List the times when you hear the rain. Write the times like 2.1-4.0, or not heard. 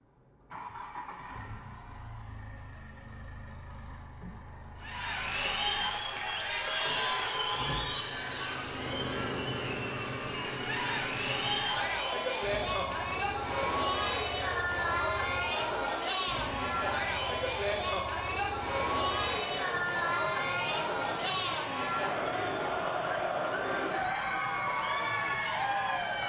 not heard.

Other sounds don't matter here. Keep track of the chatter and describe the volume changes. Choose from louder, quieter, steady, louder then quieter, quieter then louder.
steady.